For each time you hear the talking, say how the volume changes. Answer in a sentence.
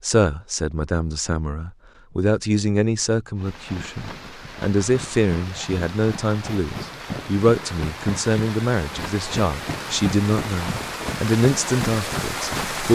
You can hear the talking from 0.0 to 12.9 s, at a steady volume.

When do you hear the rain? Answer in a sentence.
The rain can be heard from 3.4 to 12.9 s.